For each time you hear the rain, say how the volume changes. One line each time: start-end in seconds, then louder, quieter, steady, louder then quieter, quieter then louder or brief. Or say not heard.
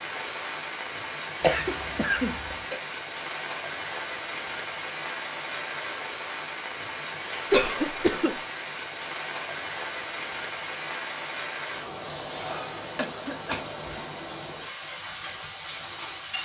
0.0-16.3 steady.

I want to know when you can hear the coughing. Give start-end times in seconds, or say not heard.
1.4-2.8, 7.5-8.3, 12.9-14.2.